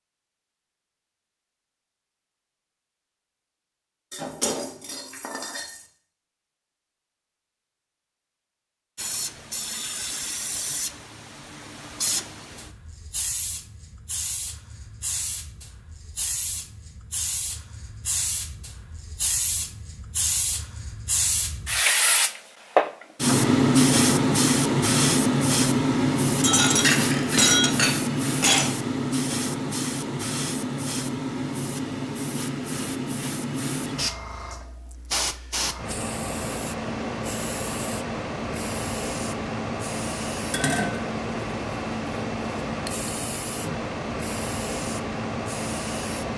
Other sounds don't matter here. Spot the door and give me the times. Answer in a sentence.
You can't hear the door here.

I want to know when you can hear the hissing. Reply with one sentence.
The hissing can be heard from 8.9 to 46.3 s.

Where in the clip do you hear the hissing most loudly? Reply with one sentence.
The loudest moment of the hissing is at 24 seconds.